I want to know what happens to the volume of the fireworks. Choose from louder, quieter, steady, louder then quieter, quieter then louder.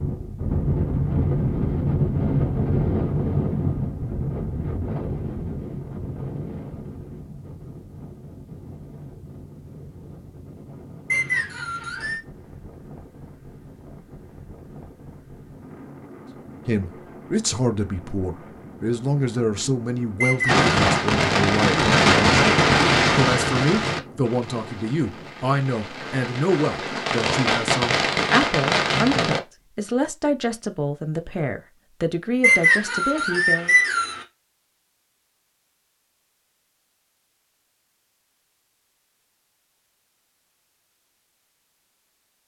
quieter then louder.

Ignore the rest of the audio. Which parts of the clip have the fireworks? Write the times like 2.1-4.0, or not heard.
20.4-29.4.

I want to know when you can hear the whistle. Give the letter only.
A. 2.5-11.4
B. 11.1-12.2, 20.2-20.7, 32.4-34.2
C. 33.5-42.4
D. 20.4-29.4
B.